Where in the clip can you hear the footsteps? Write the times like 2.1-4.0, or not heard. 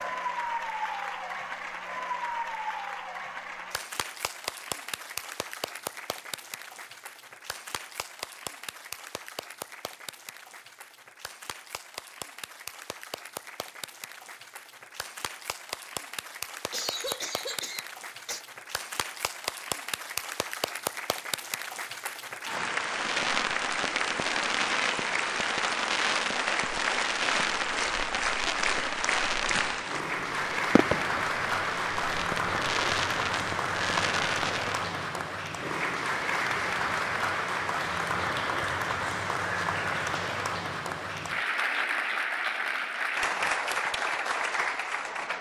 not heard.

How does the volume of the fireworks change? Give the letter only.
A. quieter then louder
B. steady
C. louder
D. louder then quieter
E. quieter
B.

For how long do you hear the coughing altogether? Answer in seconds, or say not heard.
2 s.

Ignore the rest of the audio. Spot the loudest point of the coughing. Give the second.
17 s.